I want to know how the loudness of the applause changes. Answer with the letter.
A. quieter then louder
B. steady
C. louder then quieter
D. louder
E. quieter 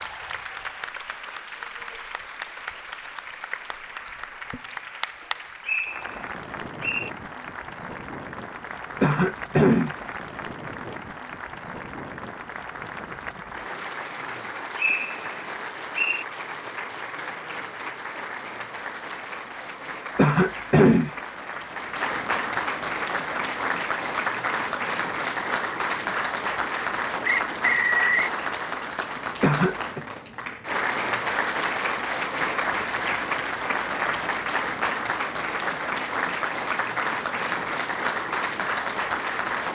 D.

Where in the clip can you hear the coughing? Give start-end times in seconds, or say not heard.
9.0-9.9, 20.1-21.1, 29.4-30.0.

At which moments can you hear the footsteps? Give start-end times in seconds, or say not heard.
not heard.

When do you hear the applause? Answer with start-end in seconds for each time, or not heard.
0.0-39.7.